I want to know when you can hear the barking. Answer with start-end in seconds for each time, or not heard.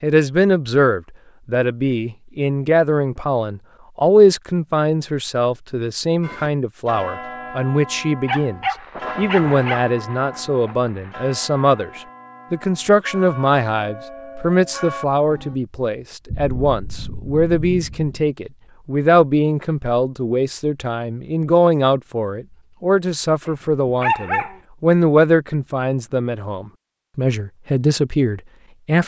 8.2-9.8, 23.4-24.6.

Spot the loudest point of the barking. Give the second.
24 s.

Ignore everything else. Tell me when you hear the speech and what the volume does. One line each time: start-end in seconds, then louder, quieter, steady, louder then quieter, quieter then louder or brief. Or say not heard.
0.0-29.0 steady.